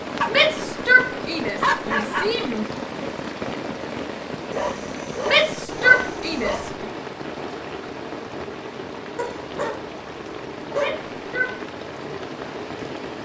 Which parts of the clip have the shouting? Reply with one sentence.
The shouting can be heard from 0.2 to 2.6 s, from 5.2 to 6.7 s and from 10.7 to 11.6 s.